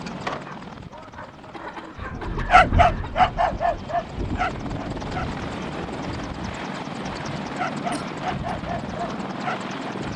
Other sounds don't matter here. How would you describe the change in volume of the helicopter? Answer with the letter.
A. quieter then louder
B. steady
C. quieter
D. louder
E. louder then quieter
D.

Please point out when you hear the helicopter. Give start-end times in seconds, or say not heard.
0.0-10.1.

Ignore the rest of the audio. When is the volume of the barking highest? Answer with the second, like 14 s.
3 s.